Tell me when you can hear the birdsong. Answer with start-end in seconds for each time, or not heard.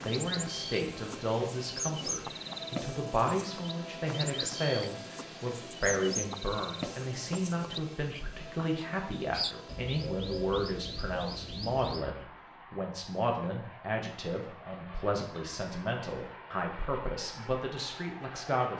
0.0-12.2.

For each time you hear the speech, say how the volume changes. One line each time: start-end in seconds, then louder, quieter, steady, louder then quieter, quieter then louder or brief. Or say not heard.
0.0-18.7 steady.